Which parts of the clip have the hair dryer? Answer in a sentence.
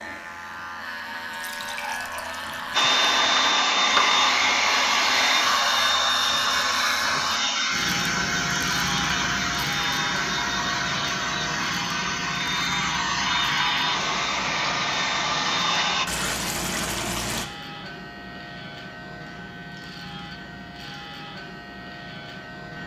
The hair dryer can be heard from 2.7 to 16.1 s.